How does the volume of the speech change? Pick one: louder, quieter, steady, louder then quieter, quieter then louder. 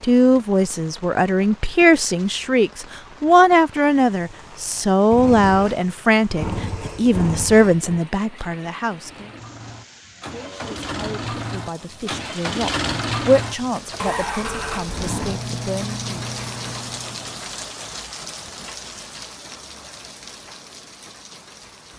quieter.